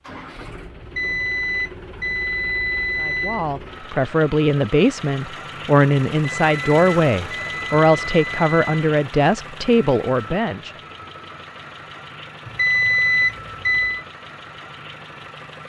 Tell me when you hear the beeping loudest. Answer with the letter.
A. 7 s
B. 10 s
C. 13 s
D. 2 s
C.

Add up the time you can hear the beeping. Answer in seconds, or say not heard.
7 s.